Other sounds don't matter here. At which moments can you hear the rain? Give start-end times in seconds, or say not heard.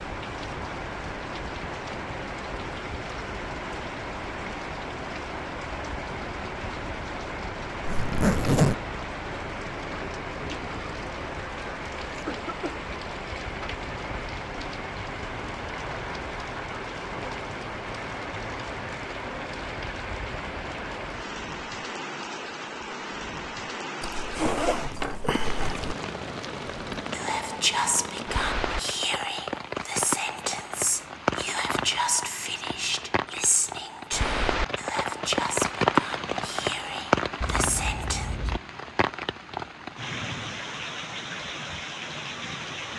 0.0-42.9.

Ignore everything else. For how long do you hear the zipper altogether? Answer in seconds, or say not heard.
4 s.